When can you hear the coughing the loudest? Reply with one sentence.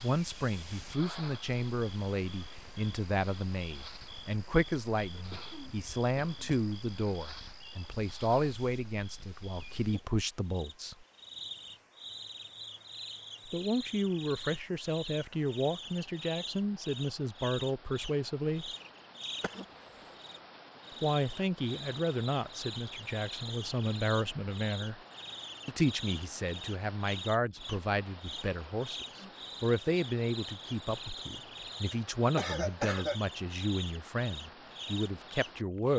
The loudest moment of the coughing is at 33 seconds.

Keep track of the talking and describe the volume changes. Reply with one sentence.
The volume of the talking stays about the same.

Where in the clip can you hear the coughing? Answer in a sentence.
You can hear the coughing from 5.1 to 6.6 s, from 19.4 to 20.1 s and from 31.9 to 33.2 s.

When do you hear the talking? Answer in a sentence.
You can hear the talking from 0.0 to 11.1 s, from 13.4 to 18.7 s, from 21.0 to 25.0 s and from 25.6 to 35.9 s.